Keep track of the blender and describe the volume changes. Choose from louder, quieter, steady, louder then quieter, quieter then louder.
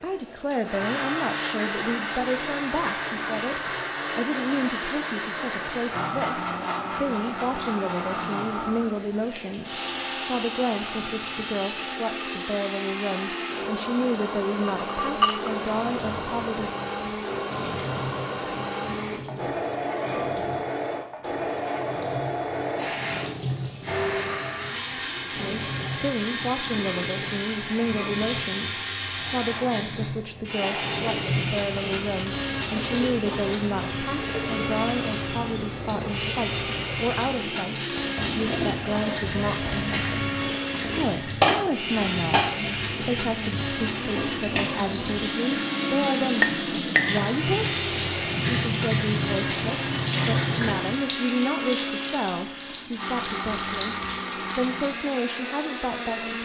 steady.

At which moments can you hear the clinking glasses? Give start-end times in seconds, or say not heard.
14.6-15.6, 46.3-47.3.